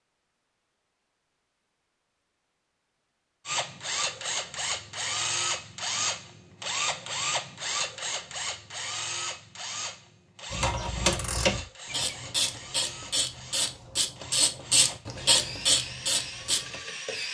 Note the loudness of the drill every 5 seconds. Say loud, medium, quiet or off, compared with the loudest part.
loud, loud, medium, medium.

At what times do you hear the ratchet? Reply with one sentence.
You can hear the ratchet from 10.5 to 16.8 s.